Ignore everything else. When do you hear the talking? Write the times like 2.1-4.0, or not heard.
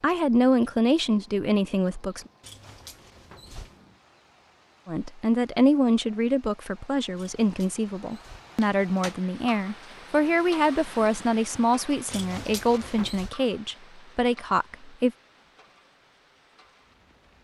0.0-2.2, 4.8-15.1.